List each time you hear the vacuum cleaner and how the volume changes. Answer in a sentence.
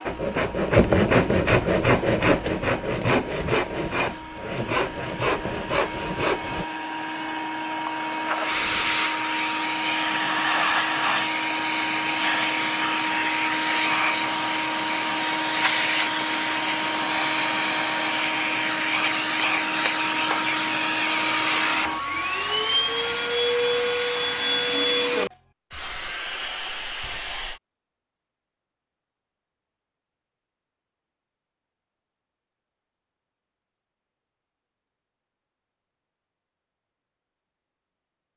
You can hear the vacuum cleaner from 0.0 to 27.6 s, getting louder.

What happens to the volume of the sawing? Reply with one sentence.
The volume of the sawing goes down.